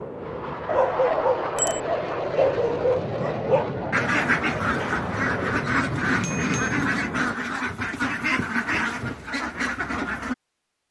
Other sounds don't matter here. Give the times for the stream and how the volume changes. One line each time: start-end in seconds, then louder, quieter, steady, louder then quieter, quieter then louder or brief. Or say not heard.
not heard.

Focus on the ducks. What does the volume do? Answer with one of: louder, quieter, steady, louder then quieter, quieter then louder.
steady.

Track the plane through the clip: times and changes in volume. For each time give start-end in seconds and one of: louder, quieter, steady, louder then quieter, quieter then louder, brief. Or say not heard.
0.0-7.3 steady.